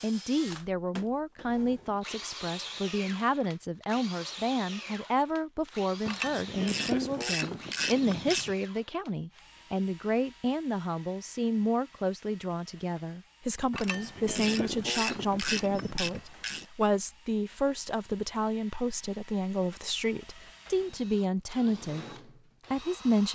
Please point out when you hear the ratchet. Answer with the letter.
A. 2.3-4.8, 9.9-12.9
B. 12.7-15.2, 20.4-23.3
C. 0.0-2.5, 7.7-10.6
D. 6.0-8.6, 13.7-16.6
D.